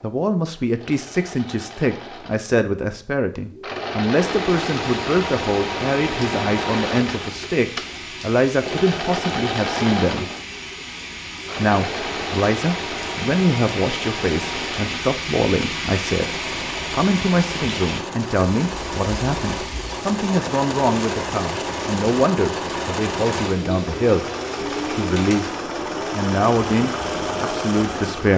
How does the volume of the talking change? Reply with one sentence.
The volume of the talking stays about the same.